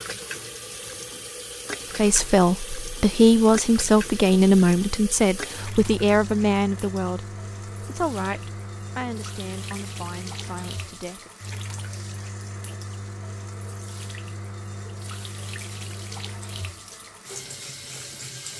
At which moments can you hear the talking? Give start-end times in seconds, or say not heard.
1.9-11.3.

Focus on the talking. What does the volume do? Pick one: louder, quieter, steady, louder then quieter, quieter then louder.
quieter.